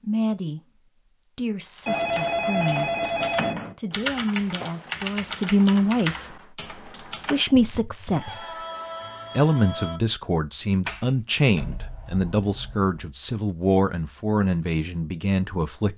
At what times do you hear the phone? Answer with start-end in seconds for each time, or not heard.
1.9-3.8, 8.1-10.0.